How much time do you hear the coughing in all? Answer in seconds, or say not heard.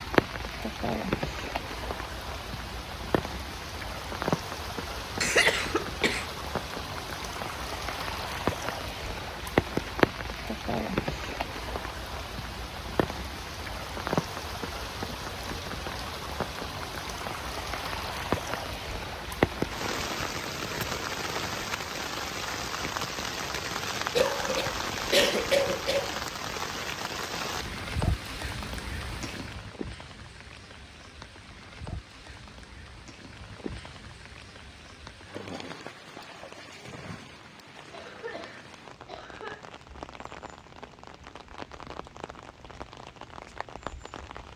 5 s.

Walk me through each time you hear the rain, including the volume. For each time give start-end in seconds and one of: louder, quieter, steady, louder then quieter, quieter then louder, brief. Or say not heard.
0.0-44.5 quieter.